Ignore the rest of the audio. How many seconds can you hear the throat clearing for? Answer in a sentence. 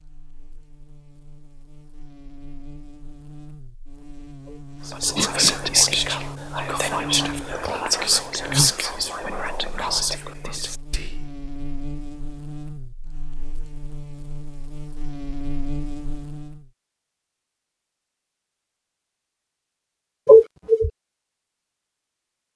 The throat clearing can be heard for 2 seconds in total.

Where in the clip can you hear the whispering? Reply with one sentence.
The whispering can be heard from 4.8 to 11.3 s.